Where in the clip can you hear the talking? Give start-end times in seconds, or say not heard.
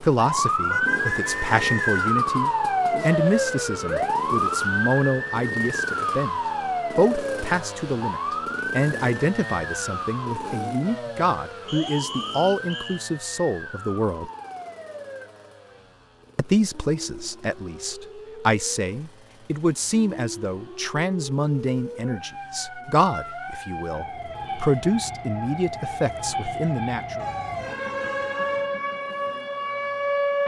0.0-6.3, 7.0-14.3, 16.4-27.2.